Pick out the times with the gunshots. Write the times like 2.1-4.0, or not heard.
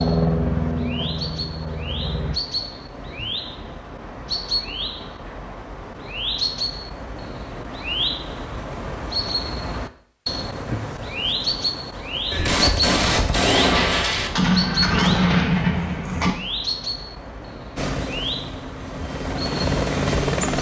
12.3-16.4.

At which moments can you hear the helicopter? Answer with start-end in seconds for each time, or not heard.
0.0-2.4, 17.8-20.5.